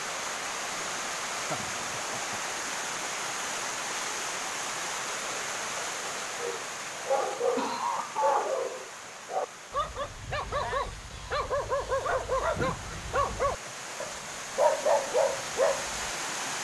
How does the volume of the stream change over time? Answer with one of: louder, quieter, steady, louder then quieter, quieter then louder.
quieter then louder.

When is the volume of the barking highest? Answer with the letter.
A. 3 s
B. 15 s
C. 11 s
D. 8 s
B.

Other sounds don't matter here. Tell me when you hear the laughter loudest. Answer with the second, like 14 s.
8 s.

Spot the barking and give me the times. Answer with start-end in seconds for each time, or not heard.
6.3-16.1.